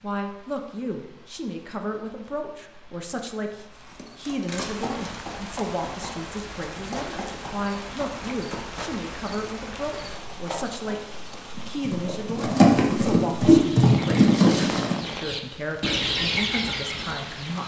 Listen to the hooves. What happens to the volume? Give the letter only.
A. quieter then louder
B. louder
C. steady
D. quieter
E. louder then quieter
B.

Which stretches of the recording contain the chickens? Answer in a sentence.
The chickens can be heard from 13.4 to 17.6 s.